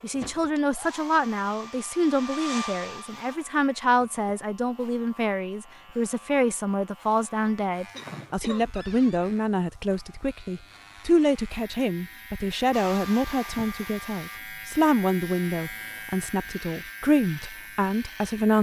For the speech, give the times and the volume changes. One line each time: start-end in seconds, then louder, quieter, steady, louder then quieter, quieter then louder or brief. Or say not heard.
0.0-18.5 steady.